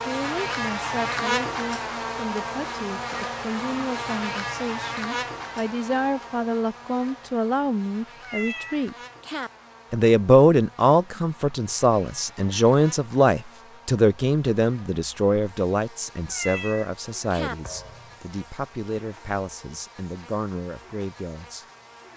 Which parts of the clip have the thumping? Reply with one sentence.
The thumping can be heard from 17.6 to 18.3 s.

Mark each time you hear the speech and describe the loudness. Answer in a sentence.
The speech can be heard from 0.0 to 8.9 s, getting louder; and from 9.9 to 21.6 s, getting quieter.